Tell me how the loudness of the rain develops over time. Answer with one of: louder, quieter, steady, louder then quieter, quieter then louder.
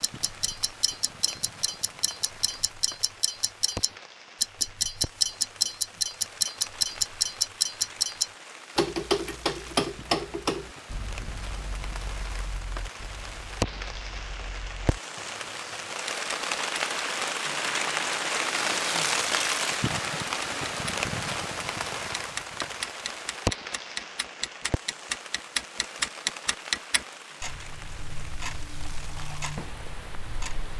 louder then quieter.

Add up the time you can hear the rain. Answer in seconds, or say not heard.
31 s.